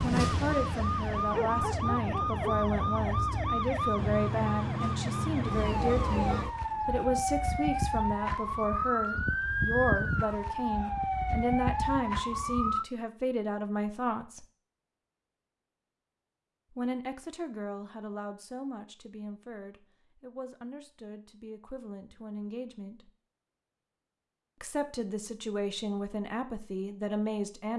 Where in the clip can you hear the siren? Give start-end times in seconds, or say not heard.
0.0-12.8.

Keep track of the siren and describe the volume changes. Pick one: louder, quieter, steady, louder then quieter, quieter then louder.
steady.